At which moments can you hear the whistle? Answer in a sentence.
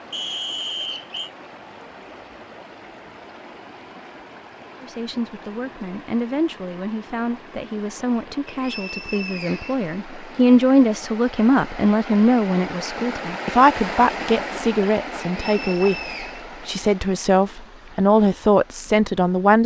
The whistle can be heard from 0.1 to 1.3 s, from 8.4 to 9.9 s and from 15.3 to 16.4 s.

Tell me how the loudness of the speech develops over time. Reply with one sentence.
The volume of the speech goes up.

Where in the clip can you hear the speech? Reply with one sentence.
You can hear the speech from 4.8 to 19.6 s.